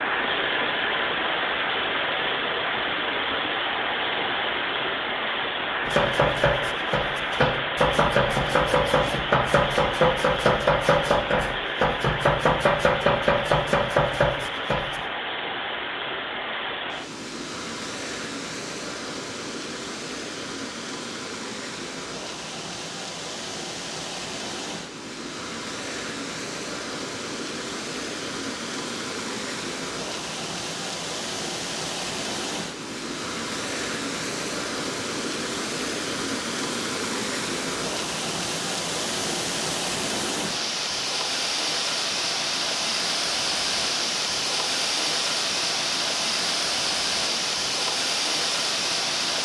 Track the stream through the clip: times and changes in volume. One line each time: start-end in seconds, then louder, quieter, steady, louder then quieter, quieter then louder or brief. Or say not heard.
0.0-49.3 quieter then louder.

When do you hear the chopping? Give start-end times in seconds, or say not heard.
5.8-15.0.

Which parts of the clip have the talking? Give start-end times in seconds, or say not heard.
not heard.